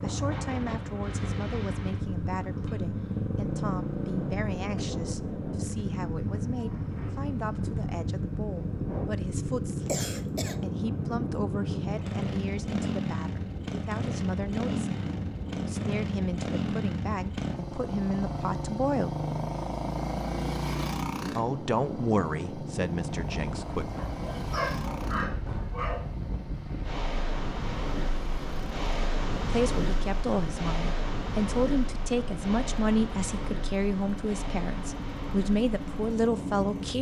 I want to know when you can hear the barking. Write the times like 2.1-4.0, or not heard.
23.9-26.0.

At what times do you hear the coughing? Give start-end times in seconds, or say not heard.
9.8-10.6.